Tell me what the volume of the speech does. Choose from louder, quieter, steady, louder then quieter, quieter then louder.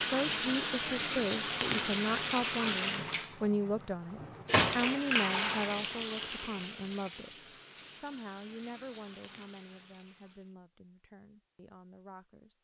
quieter.